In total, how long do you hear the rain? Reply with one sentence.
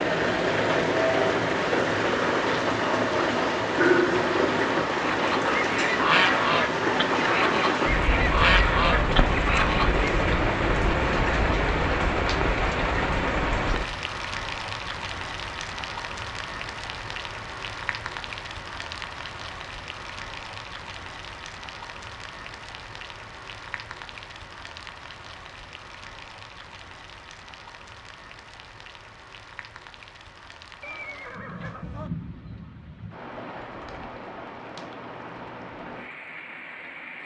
You can hear the rain for 37 seconds altogether.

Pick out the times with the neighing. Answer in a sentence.
The neighing can be heard from 30.8 to 32.1 s.